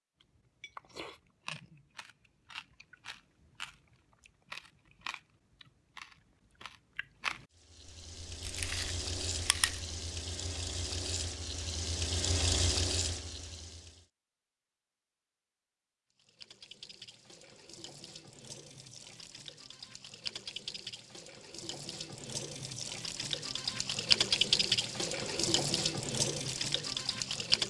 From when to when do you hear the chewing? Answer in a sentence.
You can hear the chewing from 0.2 to 7.5 s and from 8.3 to 9.9 s.